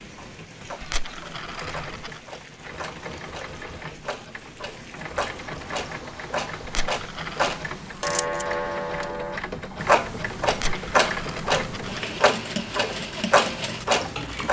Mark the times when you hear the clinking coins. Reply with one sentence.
You can hear the clinking coins from 0.8 to 2.2 s, from 6.7 to 7.6 s and from 10.5 to 12.0 s.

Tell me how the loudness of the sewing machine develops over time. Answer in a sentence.
The loudness of the sewing machine goes up.